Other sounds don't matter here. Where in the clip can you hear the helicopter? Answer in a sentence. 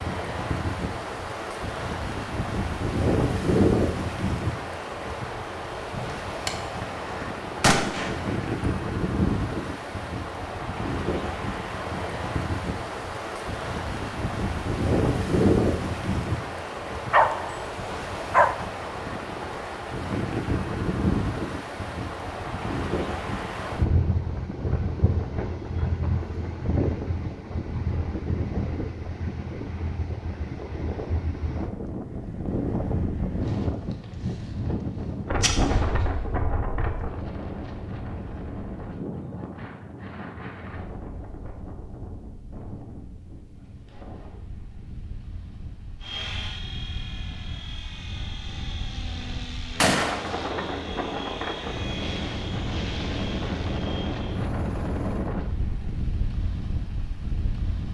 You can hear the helicopter from 46.0 to 55.4 s.